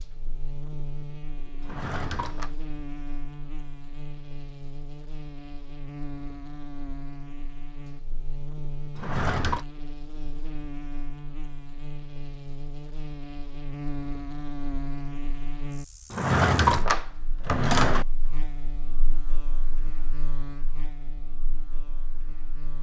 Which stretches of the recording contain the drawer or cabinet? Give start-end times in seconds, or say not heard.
1.6-2.5, 8.9-9.7, 16.1-18.1.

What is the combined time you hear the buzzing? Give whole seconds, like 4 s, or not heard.
23 s.